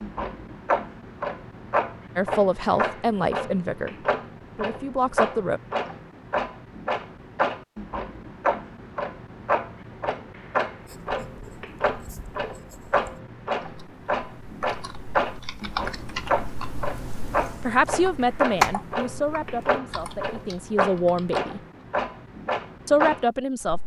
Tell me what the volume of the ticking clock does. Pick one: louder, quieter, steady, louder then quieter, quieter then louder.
steady.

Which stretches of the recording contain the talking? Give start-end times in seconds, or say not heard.
2.1-5.6, 17.6-21.6, 22.9-23.8.